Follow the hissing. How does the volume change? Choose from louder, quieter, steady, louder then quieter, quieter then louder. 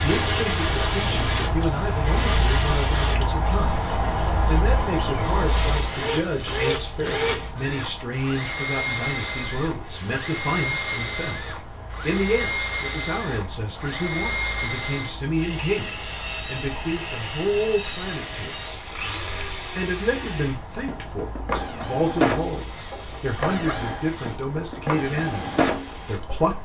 quieter.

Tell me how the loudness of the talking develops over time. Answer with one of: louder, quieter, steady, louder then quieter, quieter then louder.
steady.